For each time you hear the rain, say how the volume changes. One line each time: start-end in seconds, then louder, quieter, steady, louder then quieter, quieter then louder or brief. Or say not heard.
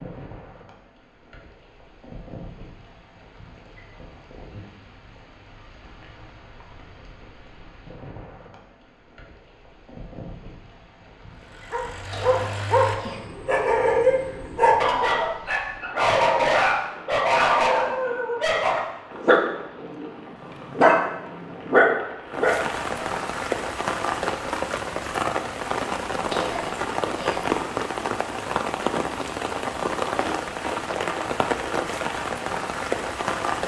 0.0-33.6 louder.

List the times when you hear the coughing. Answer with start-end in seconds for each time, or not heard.
11.9-13.3, 26.1-27.6.